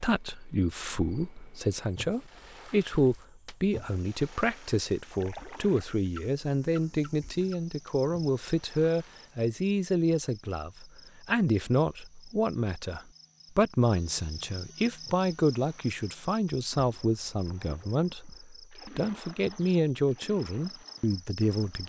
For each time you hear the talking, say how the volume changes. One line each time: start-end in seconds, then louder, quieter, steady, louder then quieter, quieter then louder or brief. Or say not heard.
0.0-21.8 steady.